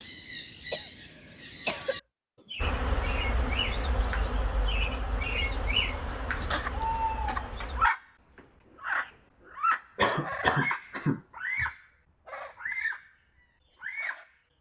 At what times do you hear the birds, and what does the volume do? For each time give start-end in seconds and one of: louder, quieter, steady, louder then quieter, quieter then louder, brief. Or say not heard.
0.0-13.1 louder then quieter
13.8-14.3 brief.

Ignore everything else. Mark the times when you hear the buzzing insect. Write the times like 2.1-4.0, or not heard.
2.6-7.9.